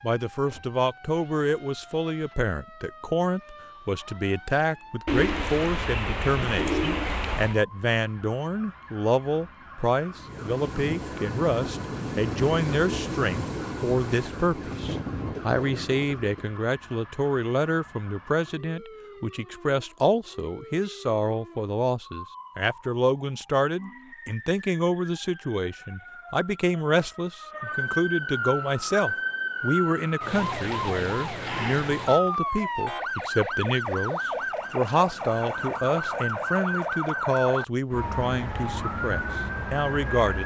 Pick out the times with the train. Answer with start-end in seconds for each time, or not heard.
10.1-16.6.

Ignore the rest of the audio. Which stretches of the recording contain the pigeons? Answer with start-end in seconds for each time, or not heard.
5.0-7.6.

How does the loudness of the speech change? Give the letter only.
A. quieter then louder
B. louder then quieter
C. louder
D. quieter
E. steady
E.